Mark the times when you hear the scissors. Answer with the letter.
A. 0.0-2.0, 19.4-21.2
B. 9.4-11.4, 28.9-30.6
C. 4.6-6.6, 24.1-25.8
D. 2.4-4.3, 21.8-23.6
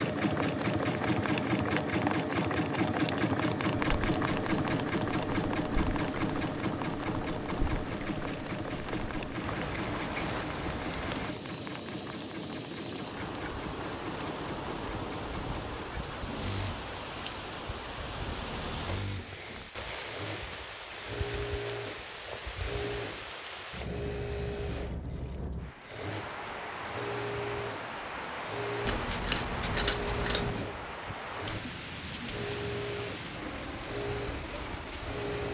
B.